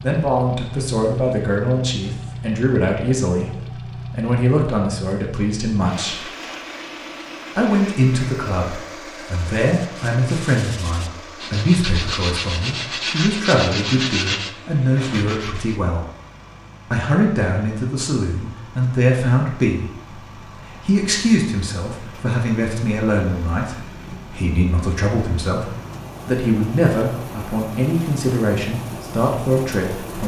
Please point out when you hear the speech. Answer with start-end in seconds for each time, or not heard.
0.0-6.2, 7.5-16.1, 16.9-30.2.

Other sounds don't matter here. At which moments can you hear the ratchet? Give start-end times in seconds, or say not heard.
not heard.